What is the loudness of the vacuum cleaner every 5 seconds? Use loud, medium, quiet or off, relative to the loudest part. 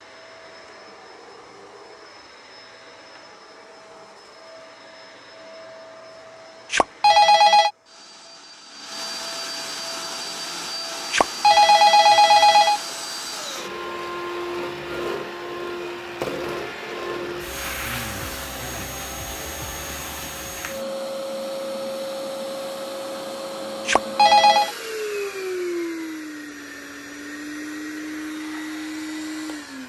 quiet, medium, loud, loud, loud, loud.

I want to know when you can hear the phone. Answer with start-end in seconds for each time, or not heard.
6.7-7.7, 11.1-12.8, 23.9-24.7.